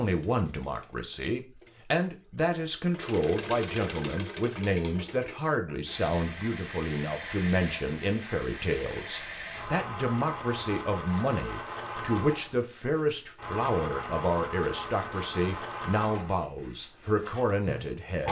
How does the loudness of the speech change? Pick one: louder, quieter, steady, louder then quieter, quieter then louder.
steady.